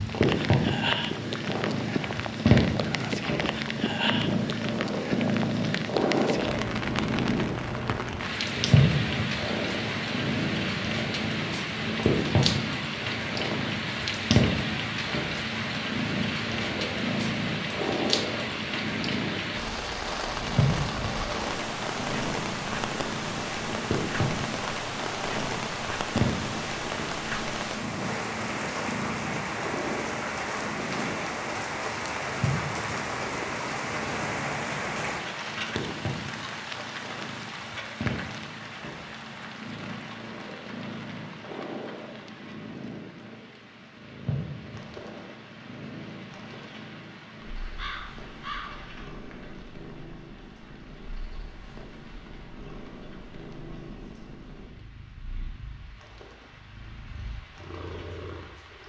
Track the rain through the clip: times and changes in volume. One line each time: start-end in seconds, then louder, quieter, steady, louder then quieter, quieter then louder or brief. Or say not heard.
0.0-58.8 quieter.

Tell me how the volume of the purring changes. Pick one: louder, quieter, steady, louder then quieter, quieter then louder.
quieter.